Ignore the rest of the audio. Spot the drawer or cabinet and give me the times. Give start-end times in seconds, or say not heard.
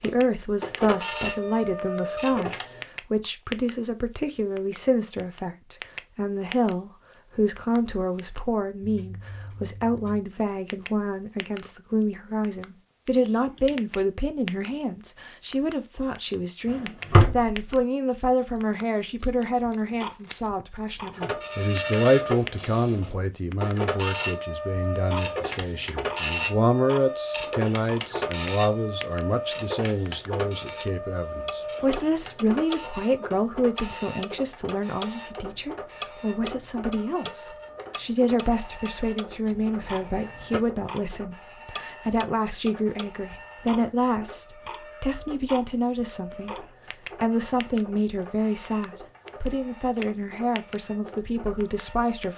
16.7-17.6.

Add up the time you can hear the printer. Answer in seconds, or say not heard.
34 s.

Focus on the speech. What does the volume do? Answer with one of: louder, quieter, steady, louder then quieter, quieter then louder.
steady.